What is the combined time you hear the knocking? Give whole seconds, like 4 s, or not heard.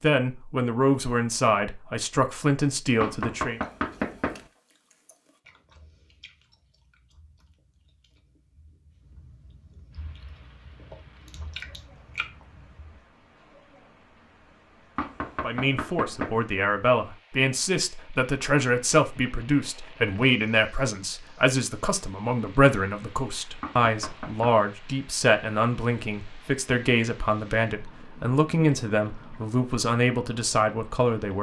4 s.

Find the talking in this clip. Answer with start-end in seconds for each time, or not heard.
0.0-3.6, 15.4-31.3.